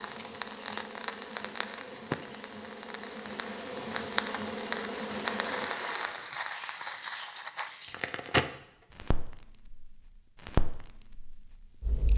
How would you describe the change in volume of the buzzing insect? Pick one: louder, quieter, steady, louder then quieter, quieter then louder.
louder.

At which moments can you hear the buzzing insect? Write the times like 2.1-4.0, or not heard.
0.0-6.3.